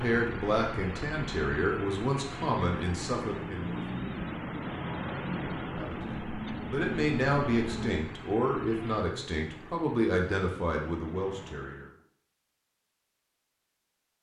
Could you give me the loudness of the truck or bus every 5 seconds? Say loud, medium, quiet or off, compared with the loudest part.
loud, loud, medium.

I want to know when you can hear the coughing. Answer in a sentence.
The coughing can't be heard in this clip.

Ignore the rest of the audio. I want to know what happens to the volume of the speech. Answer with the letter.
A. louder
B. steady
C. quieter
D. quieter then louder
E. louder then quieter
B.